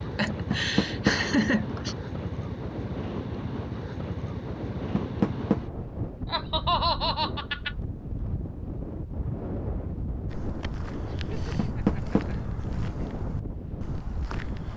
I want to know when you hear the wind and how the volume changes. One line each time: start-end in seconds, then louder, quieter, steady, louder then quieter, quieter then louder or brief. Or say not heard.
0.0-14.7 steady.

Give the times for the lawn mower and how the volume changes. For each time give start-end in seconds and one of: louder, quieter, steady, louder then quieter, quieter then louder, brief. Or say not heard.
not heard.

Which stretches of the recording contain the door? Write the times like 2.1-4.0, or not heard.
0.5-1.1, 5.0-5.6, 11.6-12.2.